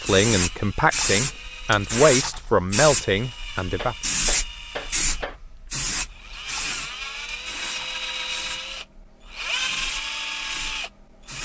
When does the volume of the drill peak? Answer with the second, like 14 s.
10 s.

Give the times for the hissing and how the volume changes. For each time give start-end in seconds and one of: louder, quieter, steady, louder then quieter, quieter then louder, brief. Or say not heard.
0.0-11.4 quieter.